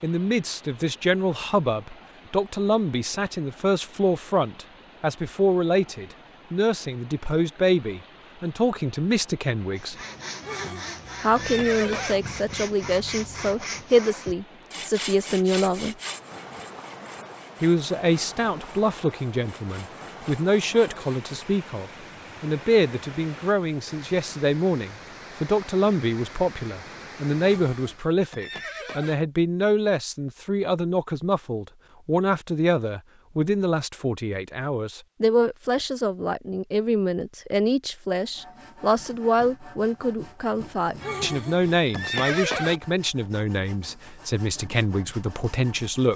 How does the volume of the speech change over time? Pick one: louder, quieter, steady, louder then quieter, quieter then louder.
steady.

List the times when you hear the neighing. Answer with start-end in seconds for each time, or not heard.
10.4-12.2, 27.4-29.1, 41.0-42.8.